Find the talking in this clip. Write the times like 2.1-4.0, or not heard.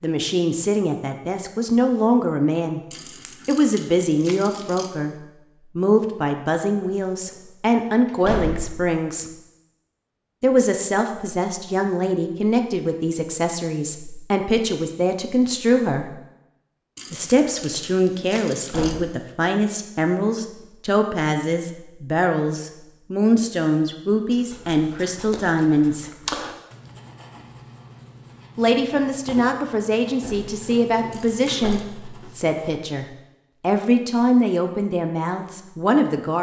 0.0-2.8, 3.5-5.2, 5.8-9.2, 10.4-16.1, 17.1-26.1, 28.6-36.3.